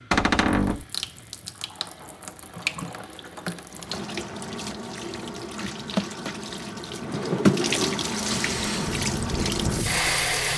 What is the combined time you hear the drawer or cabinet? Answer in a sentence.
The drawer or cabinet can be heard for 2 seconds in total.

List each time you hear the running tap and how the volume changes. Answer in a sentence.
You can hear the running tap from 0.0 to 10.5 s, getting louder.